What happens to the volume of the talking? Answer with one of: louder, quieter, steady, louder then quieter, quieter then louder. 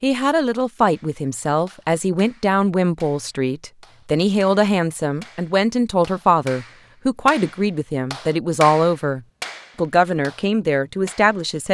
steady.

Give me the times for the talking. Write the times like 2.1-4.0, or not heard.
0.0-11.7.